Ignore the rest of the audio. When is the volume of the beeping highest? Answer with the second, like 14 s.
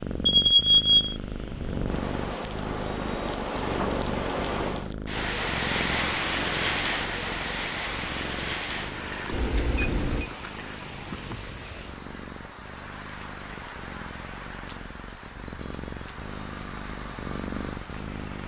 1 s.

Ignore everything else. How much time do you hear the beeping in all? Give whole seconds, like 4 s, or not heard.
3 s.